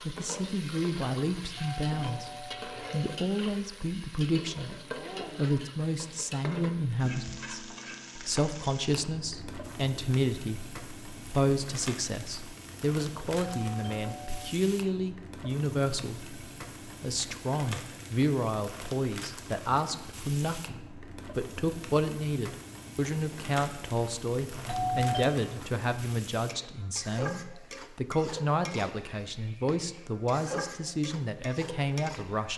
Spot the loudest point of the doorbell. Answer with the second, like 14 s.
25 s.